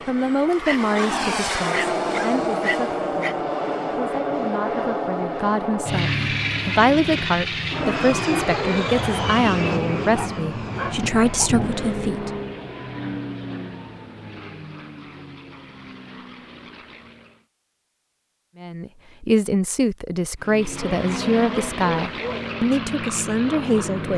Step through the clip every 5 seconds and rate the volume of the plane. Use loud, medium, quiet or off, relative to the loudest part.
loud, loud, medium, quiet, medium.